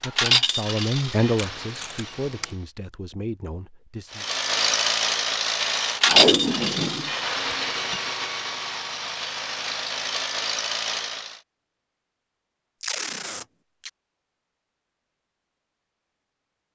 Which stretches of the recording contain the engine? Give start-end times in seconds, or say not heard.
0.0-2.7, 4.1-11.4.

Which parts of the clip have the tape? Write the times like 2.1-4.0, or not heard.
1.4-2.5, 6.0-8.0, 12.8-13.9.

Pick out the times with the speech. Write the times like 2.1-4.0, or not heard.
0.0-4.2.